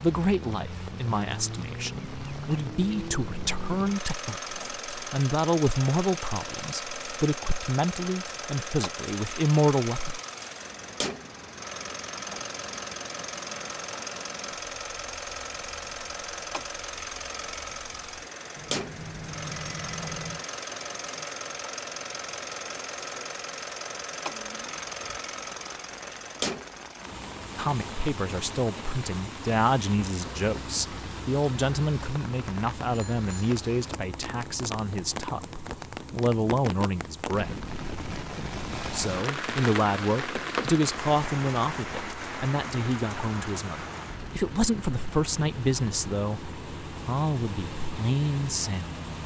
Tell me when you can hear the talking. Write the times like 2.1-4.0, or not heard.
0.0-10.2, 27.6-37.7, 38.9-48.9.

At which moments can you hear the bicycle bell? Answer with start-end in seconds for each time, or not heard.
18.6-20.4, 32.9-33.5.